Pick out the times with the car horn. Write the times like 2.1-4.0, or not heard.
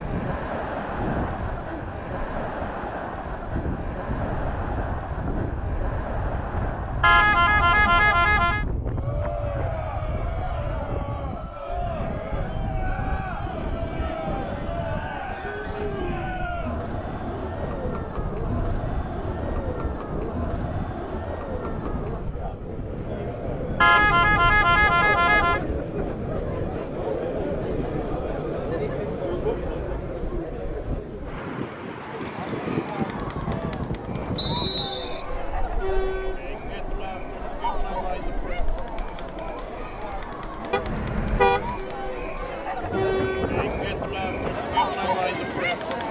7.0-8.7, 23.8-25.6, 40.7-41.8.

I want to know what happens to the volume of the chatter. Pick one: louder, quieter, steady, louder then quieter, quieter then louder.
steady.